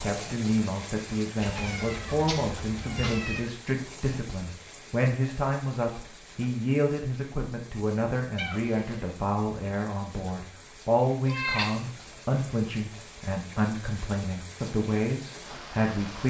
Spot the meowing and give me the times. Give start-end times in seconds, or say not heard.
1.4-3.4, 8.3-9.2, 11.2-12.0.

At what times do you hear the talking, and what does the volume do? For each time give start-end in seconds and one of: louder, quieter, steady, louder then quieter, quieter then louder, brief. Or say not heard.
0.0-16.2 steady.